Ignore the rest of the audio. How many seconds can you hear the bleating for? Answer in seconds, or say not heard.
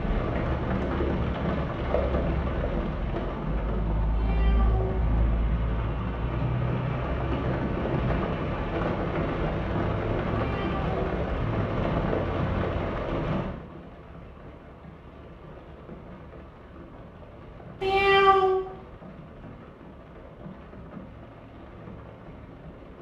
not heard.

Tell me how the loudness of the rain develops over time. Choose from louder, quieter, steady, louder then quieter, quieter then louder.
quieter.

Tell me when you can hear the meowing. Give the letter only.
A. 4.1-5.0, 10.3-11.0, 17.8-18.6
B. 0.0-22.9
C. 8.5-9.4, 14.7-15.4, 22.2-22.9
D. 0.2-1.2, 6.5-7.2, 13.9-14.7
A.